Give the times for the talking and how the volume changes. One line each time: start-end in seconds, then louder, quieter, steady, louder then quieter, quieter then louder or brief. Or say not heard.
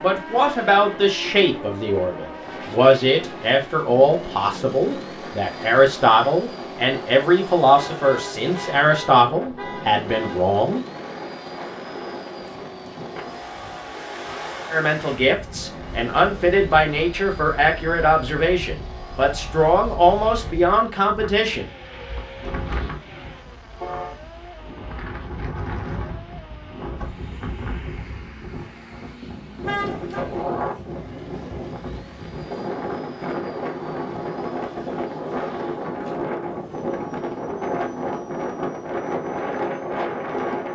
0.0-10.8 steady
14.7-21.6 steady.